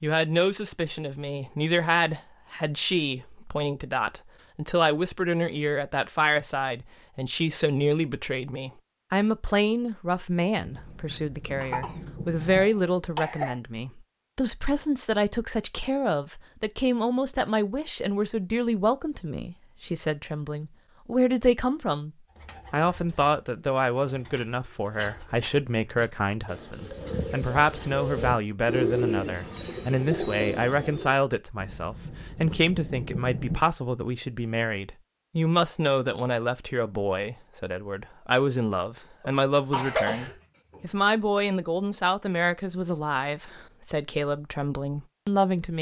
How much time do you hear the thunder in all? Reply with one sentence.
The thunder can be heard for 4 seconds in total.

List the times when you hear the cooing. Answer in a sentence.
You can hear the cooing from 22.2 to 31.1 s.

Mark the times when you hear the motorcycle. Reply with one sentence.
The motorcycle can't be heard in this clip.